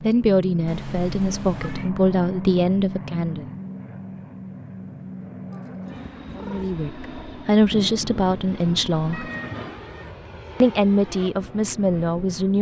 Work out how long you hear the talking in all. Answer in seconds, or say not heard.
8 s.